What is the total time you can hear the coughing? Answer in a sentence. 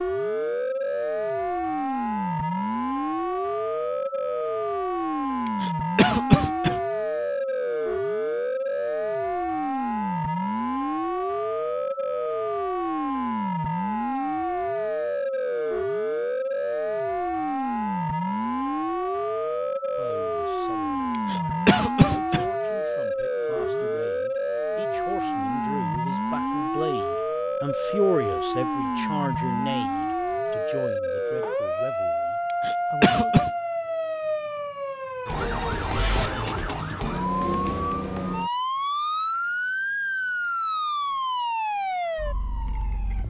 You can hear the coughing for 3 seconds altogether.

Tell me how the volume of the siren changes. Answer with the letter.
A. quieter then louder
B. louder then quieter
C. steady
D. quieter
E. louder
C.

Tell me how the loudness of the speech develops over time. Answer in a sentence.
The volume of the speech goes up, then down.